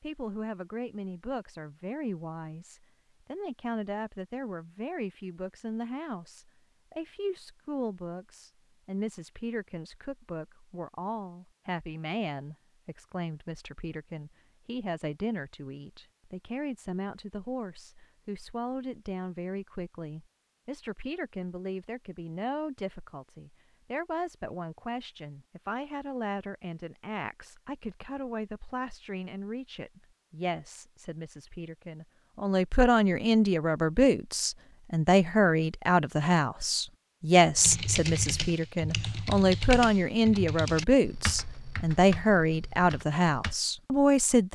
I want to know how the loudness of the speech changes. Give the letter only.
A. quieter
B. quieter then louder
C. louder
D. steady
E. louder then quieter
C.